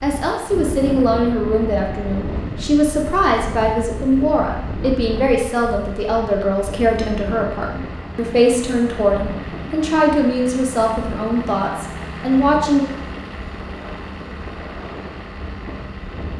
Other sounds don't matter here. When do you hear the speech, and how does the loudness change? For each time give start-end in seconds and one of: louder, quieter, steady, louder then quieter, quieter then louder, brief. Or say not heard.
0.0-12.9 steady.